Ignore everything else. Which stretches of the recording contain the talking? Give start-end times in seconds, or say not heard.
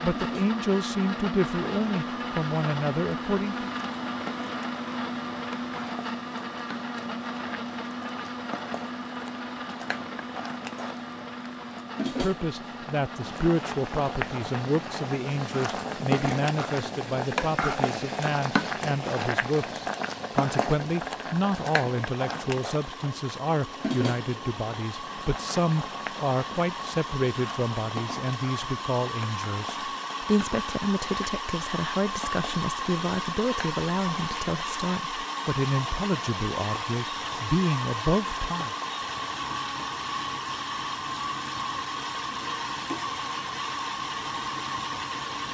0.0-3.7, 12.1-38.7.